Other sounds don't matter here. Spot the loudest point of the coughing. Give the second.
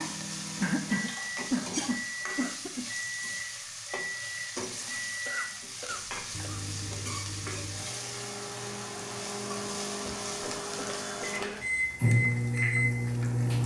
1 s.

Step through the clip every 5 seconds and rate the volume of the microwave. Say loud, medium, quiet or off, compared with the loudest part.
medium, medium, loud.